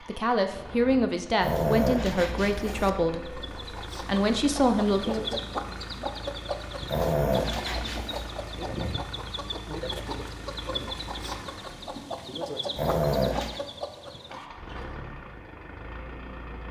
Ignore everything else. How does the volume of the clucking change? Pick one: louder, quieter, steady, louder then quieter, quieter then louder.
steady.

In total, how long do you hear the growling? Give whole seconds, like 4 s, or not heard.
4 s.